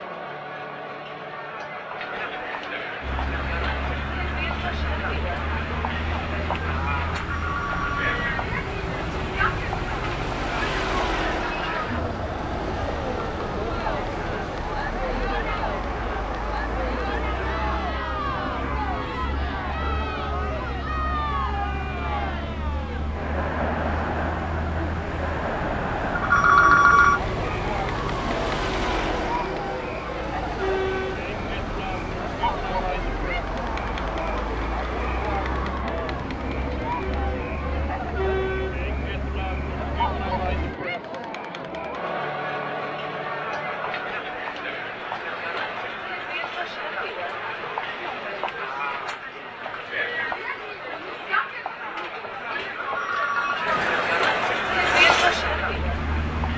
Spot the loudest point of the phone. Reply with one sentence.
The volume of the phone peaks at 27 seconds.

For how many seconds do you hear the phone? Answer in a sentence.
You can hear the phone for 3 seconds altogether.